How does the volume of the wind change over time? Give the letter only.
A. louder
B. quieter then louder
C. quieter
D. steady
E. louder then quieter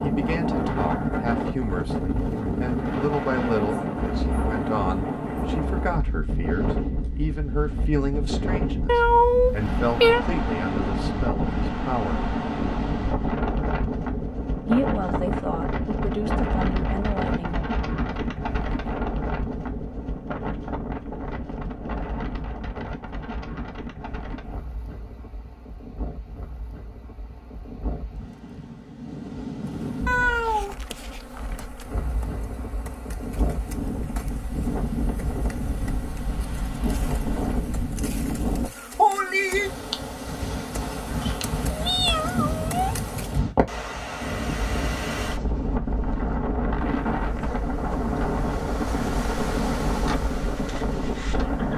B.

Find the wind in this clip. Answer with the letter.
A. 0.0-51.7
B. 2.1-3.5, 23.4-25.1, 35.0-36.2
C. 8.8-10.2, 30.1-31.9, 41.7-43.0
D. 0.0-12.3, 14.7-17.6
A.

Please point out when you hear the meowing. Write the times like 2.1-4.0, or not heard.
8.8-10.2, 30.1-31.9, 41.7-43.0.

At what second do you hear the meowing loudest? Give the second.
9 s.